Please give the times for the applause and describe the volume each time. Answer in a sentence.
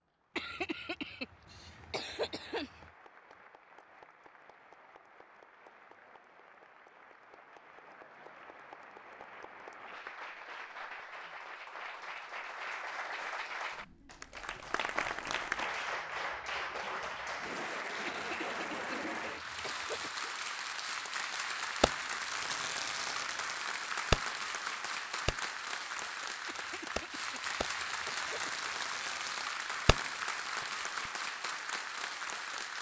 You can hear the applause from 0.0 to 32.7 s, getting louder.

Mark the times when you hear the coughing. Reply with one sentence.
The coughing can be heard from 0.3 to 2.9 s, from 18.1 to 20.3 s and from 26.4 to 28.7 s.